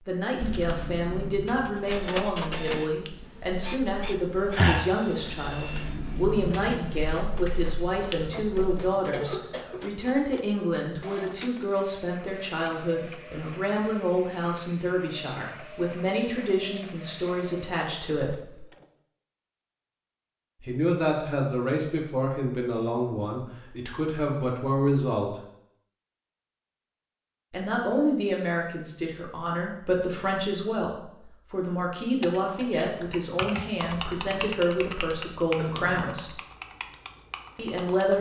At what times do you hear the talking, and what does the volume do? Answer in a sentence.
You can hear the talking from 0.1 to 18.6 s, at a steady volume; from 20.6 to 25.4 s, getting quieter then louder; from 27.5 to 36.4 s, at a steady volume; and briefly from 37.5 to 38.1 s.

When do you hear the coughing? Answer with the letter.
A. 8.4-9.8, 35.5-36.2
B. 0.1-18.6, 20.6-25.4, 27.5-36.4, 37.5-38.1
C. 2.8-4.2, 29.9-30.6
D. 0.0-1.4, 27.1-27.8
A.